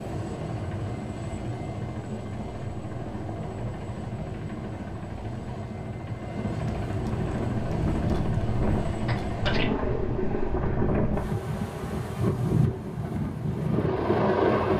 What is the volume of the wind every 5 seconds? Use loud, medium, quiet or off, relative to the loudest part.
off, medium, loud.